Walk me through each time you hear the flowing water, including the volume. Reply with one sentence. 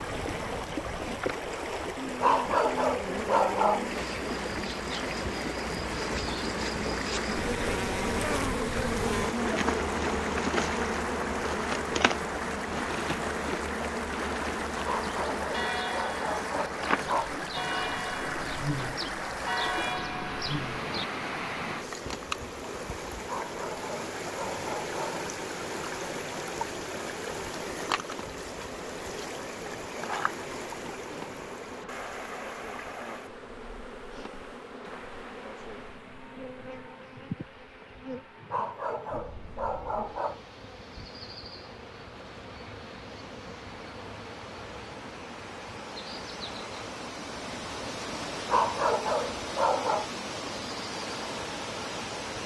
You can hear the flowing water from 0.0 to 52.4 s, getting quieter then louder.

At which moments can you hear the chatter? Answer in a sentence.
You can't hear the chatter here.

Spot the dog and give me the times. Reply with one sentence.
You can hear the dog from 2.2 to 3.9 s, from 14.8 to 17.3 s, from 23.2 to 25.2 s, from 38.5 to 40.4 s and from 48.5 to 50.0 s.